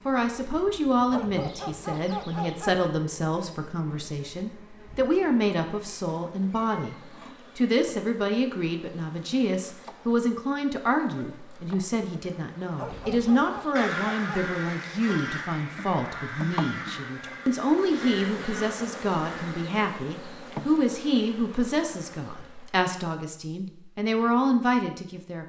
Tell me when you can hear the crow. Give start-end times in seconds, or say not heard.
12.9-19.8.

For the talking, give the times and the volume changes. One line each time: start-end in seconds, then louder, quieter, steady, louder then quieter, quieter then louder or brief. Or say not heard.
0.1-25.4 steady.